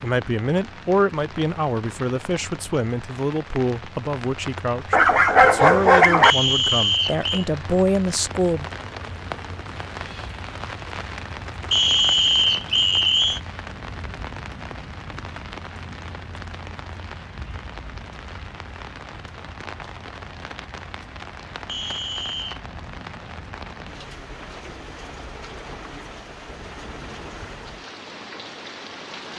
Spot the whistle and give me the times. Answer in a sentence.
The whistle can be heard from 6.2 to 7.5 s, from 11.7 to 13.4 s and from 21.6 to 22.6 s.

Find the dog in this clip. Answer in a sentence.
The dog can be heard from 4.9 to 6.8 s.